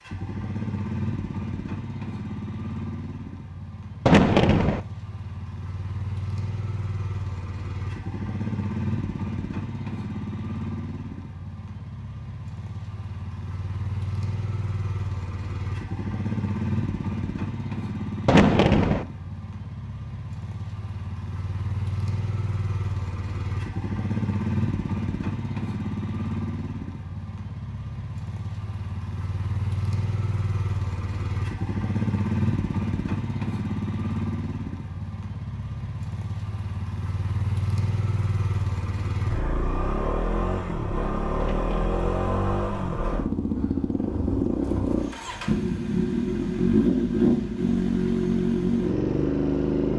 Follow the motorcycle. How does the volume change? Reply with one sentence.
The volume of the motorcycle goes up.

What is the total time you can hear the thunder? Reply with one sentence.
The thunder can be heard for 2 seconds in total.